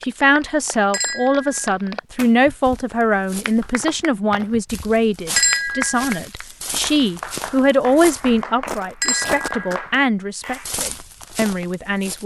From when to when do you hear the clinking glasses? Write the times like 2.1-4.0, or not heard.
0.9-1.8, 5.3-6.2, 9.0-9.6.